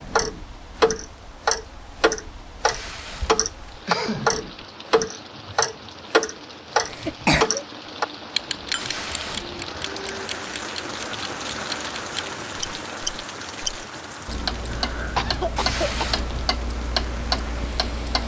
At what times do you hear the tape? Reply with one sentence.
You can hear the tape from 2.6 to 3.8 s, from 8.8 to 9.7 s and from 15.6 to 16.6 s.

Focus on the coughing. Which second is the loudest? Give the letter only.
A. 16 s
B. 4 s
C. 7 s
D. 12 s
C.